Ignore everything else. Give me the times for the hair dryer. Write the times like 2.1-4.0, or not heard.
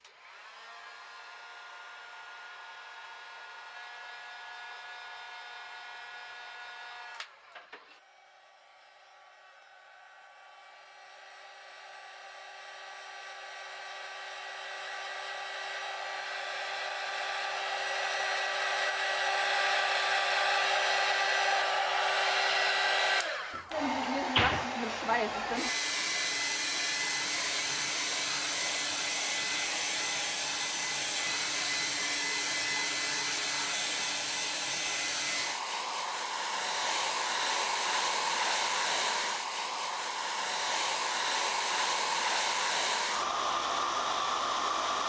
0.0-45.0.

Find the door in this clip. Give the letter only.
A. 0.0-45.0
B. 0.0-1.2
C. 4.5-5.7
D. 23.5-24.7
D.